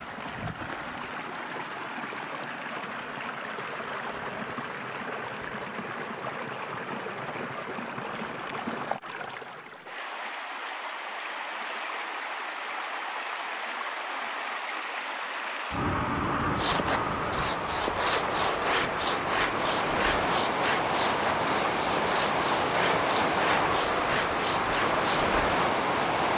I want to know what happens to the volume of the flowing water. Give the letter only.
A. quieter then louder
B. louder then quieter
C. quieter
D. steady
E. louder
E.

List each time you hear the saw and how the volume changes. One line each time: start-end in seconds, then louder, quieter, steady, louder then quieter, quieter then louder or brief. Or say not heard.
16.6-25.4 steady.